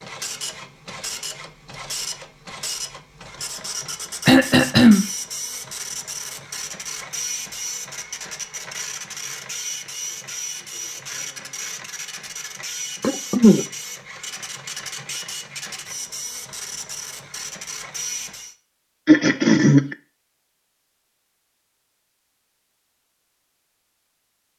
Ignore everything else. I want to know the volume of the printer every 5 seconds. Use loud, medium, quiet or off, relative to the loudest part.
loud, loud, loud, loud, off.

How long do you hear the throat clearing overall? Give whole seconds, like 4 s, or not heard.
2 s.